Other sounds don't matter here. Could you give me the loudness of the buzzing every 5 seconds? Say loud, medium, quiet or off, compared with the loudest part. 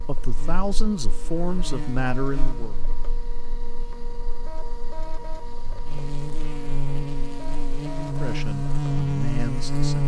quiet, loud.